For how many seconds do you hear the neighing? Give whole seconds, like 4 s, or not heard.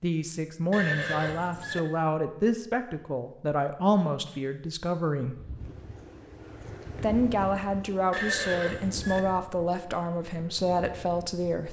2 s.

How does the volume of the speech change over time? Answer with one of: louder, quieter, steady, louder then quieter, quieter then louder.
steady.